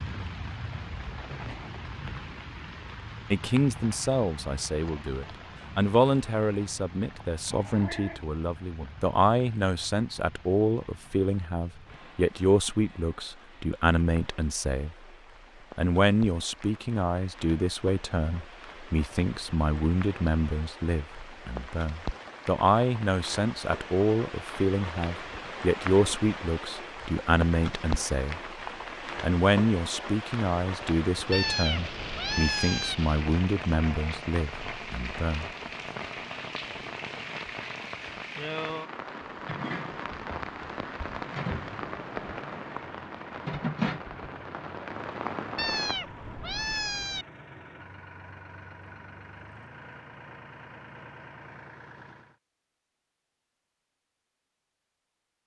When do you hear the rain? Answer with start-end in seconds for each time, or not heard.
0.0-46.0.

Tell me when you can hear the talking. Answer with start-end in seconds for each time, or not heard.
3.3-14.9, 15.8-28.4, 29.2-35.5.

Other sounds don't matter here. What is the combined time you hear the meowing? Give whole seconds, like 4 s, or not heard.
4 s.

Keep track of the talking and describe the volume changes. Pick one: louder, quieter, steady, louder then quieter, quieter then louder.
steady.